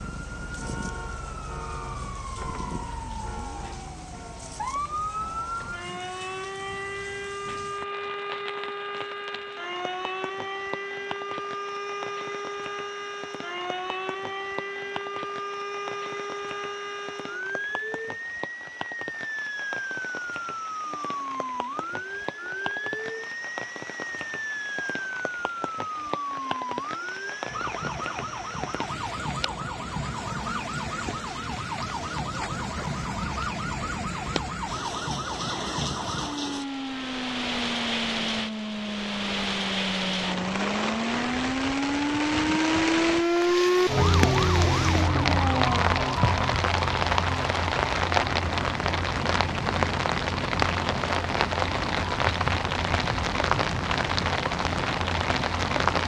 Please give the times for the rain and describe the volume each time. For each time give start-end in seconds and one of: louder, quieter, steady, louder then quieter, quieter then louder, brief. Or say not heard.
0.0-56.0 louder.